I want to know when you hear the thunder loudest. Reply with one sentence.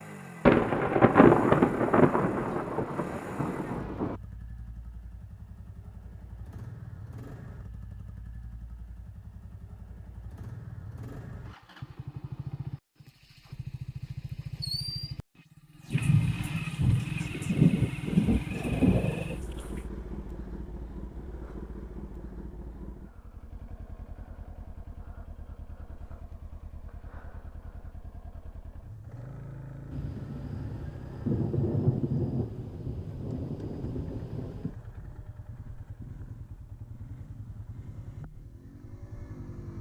The loudest moment of the thunder is at 1 second.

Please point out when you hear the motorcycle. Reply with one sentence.
The motorcycle can be heard from 0.0 to 39.7 s.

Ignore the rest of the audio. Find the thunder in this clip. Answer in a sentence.
You can hear the thunder from 0.5 to 4.2 s, from 15.9 to 19.8 s and from 29.9 to 34.8 s.